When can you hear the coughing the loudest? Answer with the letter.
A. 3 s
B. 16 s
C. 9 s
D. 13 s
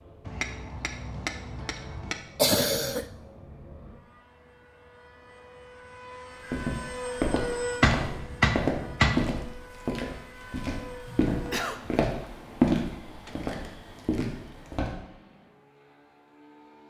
A.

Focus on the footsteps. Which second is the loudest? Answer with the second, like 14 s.
13 s.